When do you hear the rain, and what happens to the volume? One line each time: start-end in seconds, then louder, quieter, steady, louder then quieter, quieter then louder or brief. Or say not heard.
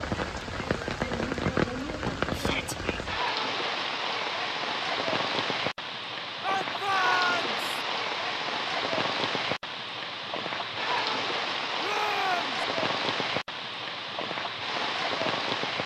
0.0-15.8 steady.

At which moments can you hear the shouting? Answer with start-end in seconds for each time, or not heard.
2.3-2.8, 6.4-7.6, 11.8-12.7.